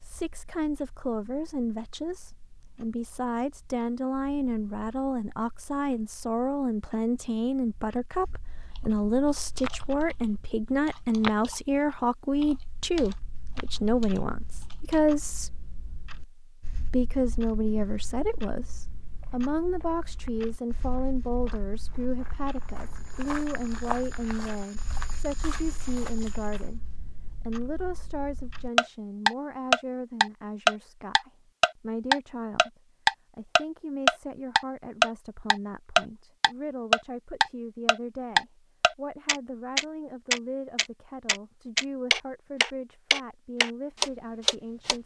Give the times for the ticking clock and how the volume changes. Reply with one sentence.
You can hear the ticking clock from 0.0 to 45.0 s, getting louder.